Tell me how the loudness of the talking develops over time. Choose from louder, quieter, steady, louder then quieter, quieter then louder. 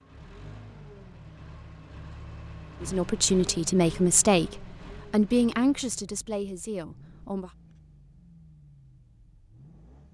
quieter.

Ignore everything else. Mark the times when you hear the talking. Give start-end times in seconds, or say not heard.
2.8-7.5.